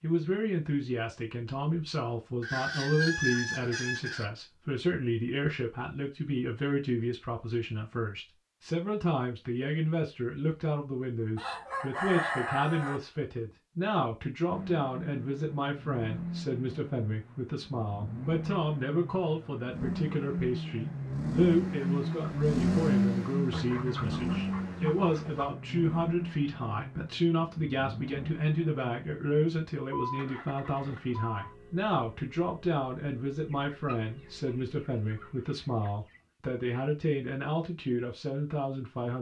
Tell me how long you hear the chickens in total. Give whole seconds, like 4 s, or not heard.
8 s.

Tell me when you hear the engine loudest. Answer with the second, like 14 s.
23 s.